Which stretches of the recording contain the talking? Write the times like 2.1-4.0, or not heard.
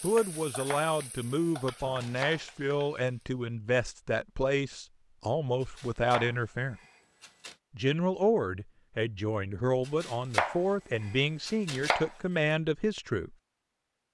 0.0-6.8, 7.8-13.3.